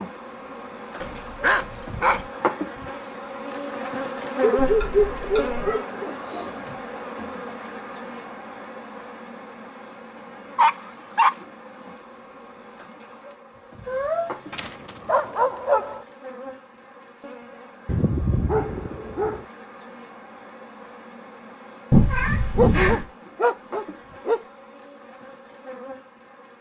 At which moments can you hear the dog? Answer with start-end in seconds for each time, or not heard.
1.0-2.3, 4.4-6.5, 10.6-11.3, 14.5-16.0, 17.9-19.4, 22.6-24.4.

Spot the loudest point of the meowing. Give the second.
22 s.